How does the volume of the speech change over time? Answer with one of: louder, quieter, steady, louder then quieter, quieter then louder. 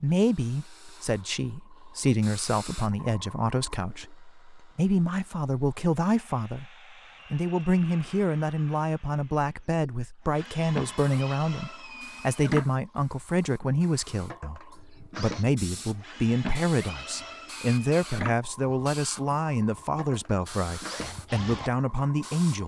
steady.